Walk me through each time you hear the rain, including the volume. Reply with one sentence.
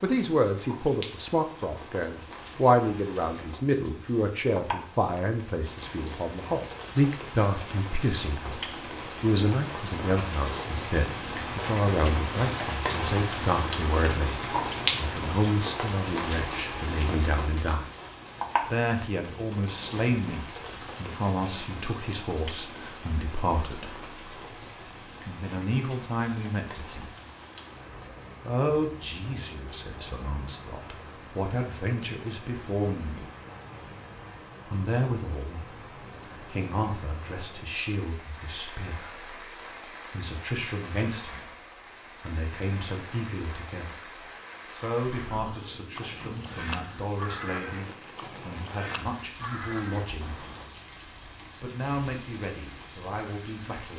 The rain can be heard from 0.0 to 53.9 s, getting louder then quieter.